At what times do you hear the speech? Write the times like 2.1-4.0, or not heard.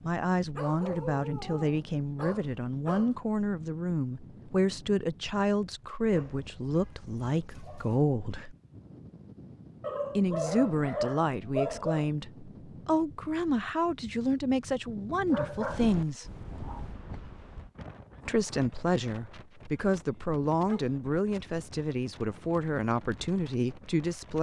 0.0-8.6, 10.2-16.3, 18.2-24.3.